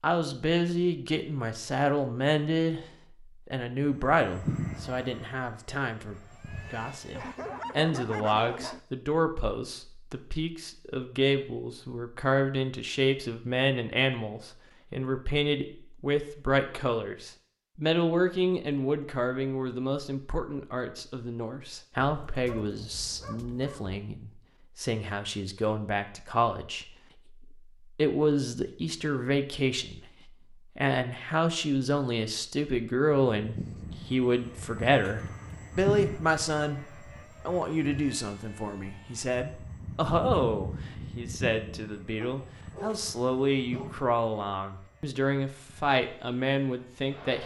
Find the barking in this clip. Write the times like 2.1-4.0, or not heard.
7.1-8.8, 22.1-24.0, 42.2-44.1.